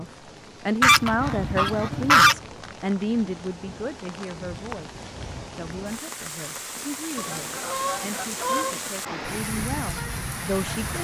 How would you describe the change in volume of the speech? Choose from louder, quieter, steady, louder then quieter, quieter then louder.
quieter.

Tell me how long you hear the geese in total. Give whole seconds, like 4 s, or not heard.
3 s.